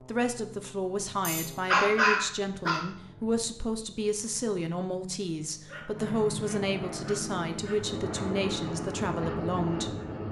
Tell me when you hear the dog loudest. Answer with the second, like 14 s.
2 s.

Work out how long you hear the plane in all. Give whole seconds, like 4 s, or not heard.
10 s.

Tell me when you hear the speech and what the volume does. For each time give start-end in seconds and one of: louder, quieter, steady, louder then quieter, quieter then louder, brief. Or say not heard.
0.1-9.9 steady.